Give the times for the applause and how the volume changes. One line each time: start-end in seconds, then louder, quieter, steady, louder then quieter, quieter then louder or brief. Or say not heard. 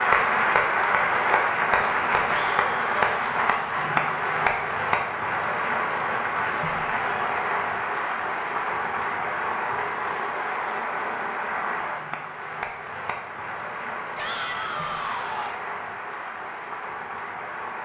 0.0-17.7 quieter.